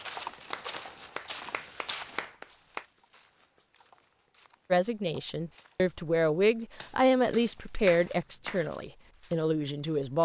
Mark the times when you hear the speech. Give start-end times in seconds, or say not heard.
4.7-10.1.